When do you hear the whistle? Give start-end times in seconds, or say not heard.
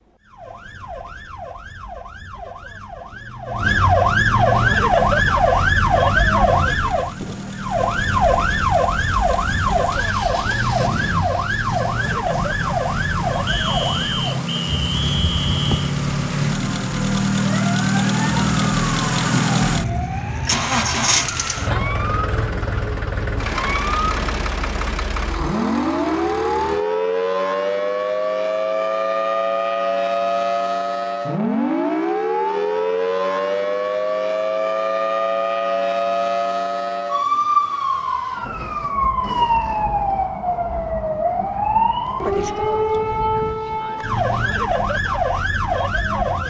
13.4-15.9.